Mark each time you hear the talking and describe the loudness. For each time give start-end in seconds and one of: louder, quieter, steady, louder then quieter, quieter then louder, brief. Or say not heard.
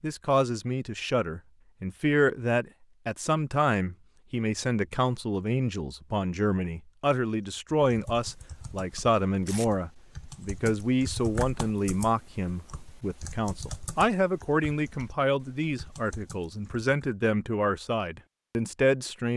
0.0-19.3 steady.